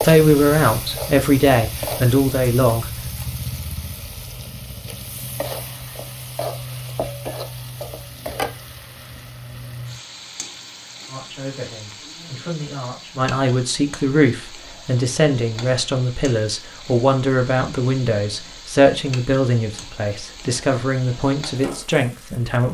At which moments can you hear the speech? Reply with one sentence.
You can hear the speech from 0.0 to 3.0 s and from 11.1 to 22.6 s.